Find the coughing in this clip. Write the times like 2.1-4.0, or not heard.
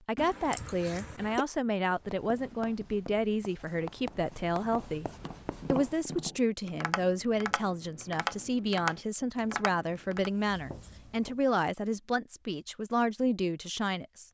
0.1-1.4.